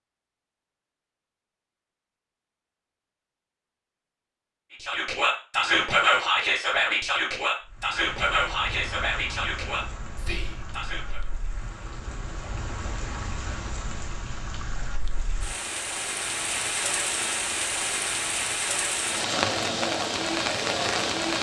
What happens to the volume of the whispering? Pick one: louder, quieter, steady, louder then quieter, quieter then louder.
quieter.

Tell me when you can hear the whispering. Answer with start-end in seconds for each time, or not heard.
4.7-11.2.